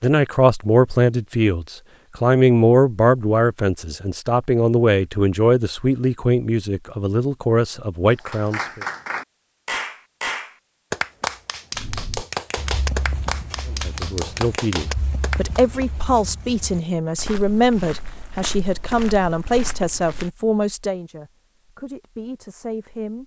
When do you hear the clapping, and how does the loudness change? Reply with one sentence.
You can hear the clapping from 8.2 to 15.7 s, at a steady volume.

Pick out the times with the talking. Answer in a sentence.
The talking can be heard from 0.0 to 8.8 s and from 13.7 to 23.2 s.